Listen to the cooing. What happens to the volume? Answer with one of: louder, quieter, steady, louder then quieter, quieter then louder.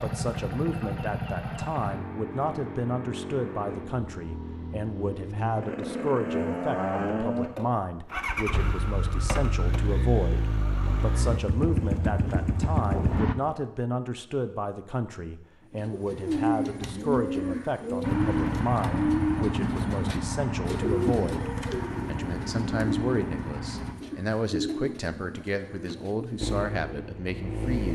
quieter.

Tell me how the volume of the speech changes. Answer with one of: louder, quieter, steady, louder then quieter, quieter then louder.
steady.